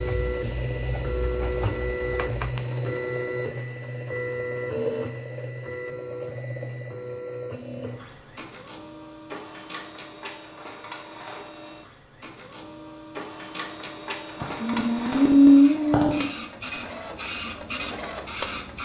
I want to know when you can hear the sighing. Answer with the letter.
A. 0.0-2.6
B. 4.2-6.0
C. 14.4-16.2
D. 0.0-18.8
C.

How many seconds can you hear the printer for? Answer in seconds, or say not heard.
19 s.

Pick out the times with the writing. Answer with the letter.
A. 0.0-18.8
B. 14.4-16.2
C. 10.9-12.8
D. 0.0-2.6
D.